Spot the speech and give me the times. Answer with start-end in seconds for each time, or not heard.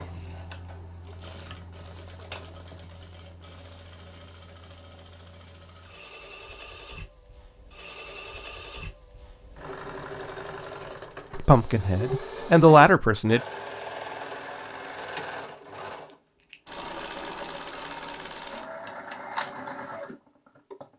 11.3-13.4.